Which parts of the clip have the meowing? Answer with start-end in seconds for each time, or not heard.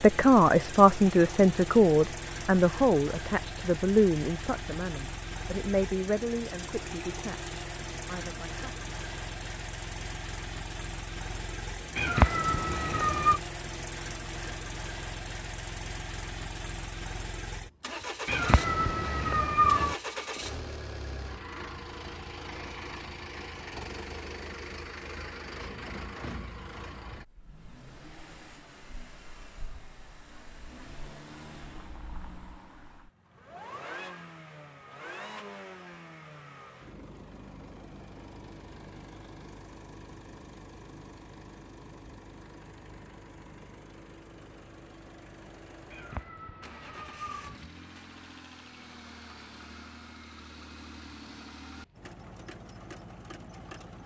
11.9-13.4, 18.2-19.9, 45.9-47.6.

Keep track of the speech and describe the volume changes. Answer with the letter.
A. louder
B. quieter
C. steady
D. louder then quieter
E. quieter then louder
B.